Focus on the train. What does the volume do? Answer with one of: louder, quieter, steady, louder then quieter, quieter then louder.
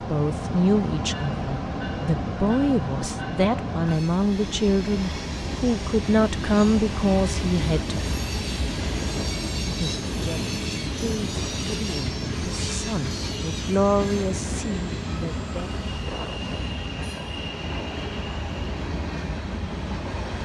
steady.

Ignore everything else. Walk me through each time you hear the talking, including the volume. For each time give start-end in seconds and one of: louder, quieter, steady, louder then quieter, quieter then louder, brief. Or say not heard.
0.1-8.0 steady
9.7-15.7 louder then quieter.